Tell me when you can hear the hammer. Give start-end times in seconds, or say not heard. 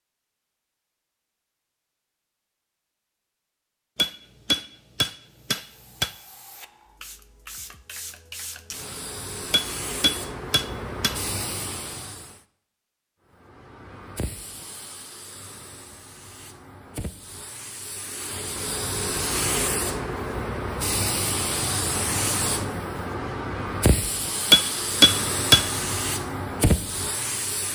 4.0-6.1, 9.5-11.2, 24.5-25.6.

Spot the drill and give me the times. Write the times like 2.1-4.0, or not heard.
not heard.